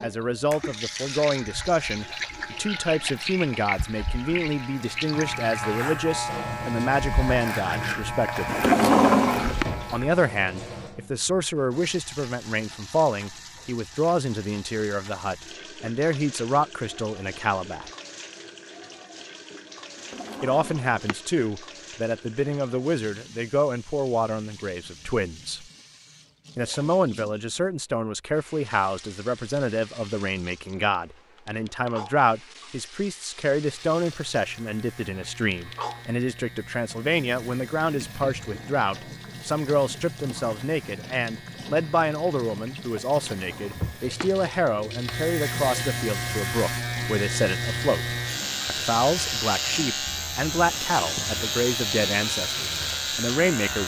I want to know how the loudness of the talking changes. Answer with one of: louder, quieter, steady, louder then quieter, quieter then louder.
steady.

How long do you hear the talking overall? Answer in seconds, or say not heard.
49 s.